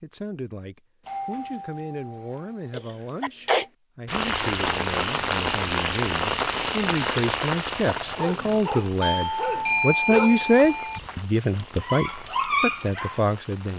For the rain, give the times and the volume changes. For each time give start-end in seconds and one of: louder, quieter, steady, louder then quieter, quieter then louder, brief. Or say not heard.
4.0-13.7 quieter.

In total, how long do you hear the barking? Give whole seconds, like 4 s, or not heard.
5 s.